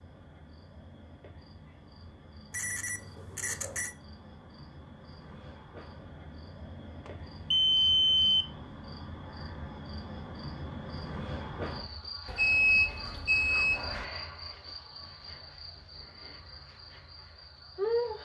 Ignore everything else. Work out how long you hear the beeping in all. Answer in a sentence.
You can hear the beeping for 5 seconds altogether.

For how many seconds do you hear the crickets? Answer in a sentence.
You can hear the crickets for 18 seconds altogether.